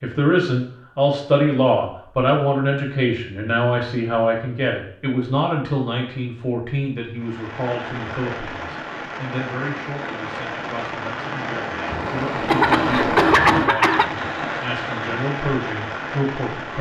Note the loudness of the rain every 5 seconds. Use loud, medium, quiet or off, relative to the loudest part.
off, medium, loud, loud.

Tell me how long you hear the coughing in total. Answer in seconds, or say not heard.
2 s.